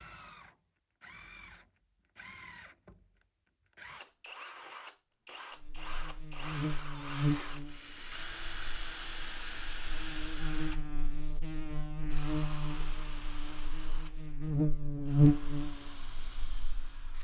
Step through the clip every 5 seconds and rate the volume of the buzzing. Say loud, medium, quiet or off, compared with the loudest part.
off, medium, medium, loud.